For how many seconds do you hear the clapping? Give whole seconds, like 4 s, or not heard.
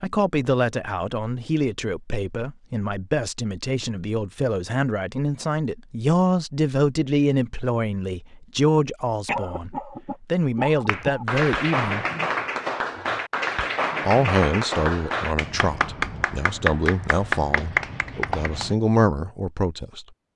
8 s.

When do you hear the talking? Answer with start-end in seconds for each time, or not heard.
0.0-12.1, 14.1-20.1.